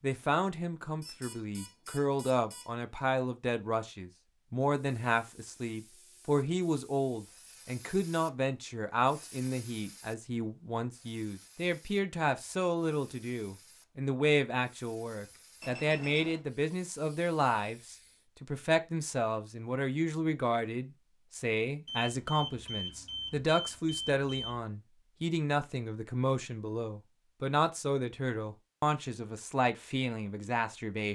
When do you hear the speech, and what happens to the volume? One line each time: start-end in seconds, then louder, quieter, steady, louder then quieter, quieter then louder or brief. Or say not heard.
0.0-31.1 steady.